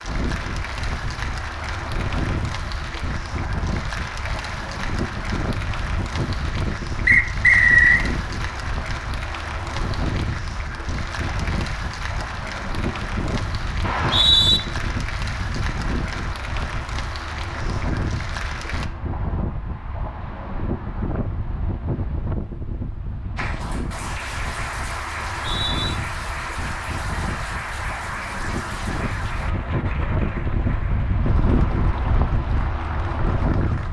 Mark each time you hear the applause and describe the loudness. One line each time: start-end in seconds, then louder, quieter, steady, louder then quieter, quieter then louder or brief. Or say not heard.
0.0-18.9 steady
23.4-33.8 quieter.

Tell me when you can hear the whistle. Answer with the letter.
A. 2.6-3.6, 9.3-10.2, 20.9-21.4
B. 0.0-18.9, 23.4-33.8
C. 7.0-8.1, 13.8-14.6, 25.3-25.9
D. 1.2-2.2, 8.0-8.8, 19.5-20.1
C.